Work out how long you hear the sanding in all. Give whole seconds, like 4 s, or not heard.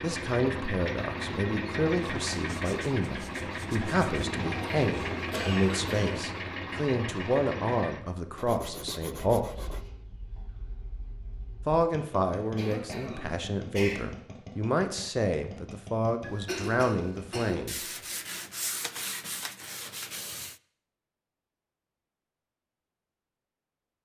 7 s.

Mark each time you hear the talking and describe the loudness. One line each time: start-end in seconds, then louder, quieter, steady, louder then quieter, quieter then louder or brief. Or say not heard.
0.0-9.8 steady
11.7-17.9 steady.